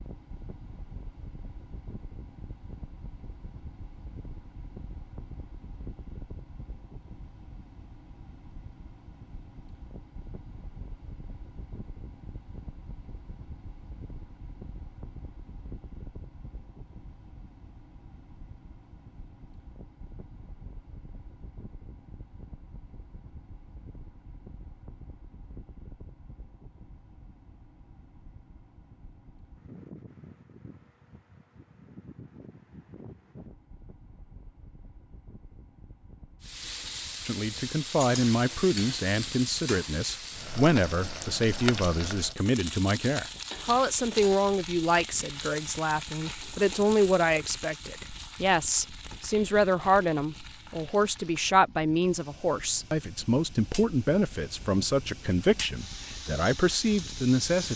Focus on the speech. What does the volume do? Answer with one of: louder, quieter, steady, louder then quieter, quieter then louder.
steady.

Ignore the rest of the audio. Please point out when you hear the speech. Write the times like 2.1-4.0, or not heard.
37.2-57.7.